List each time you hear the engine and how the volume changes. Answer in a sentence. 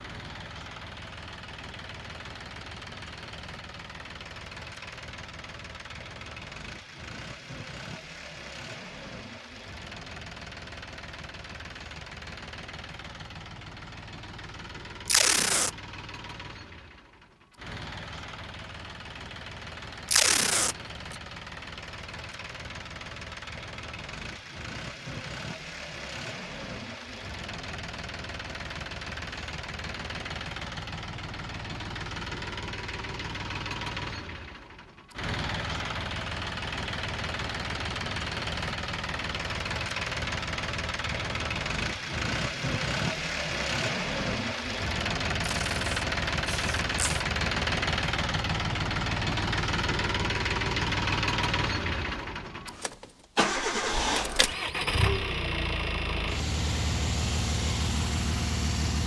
You can hear the engine from 0.0 to 59.0 s, getting louder.